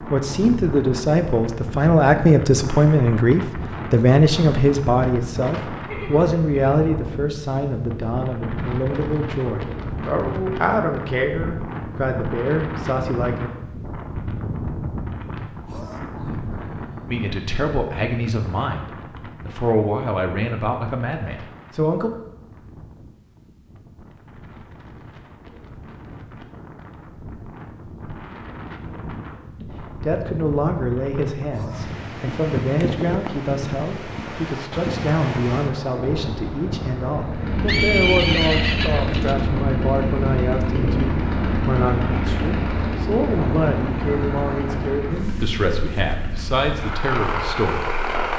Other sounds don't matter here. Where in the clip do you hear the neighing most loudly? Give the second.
38 s.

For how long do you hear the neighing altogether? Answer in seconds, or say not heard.
3 s.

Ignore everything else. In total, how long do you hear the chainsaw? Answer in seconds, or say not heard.
11 s.